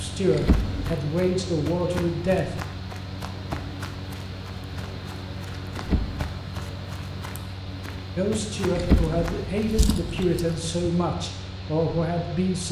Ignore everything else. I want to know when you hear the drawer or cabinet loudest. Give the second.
9 s.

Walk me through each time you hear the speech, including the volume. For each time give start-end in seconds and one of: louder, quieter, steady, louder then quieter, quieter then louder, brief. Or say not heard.
0.0-2.5 brief
8.2-12.6 steady.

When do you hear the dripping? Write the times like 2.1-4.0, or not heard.
not heard.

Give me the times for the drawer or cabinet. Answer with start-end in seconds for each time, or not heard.
0.3-1.0, 5.8-6.3, 8.8-10.9.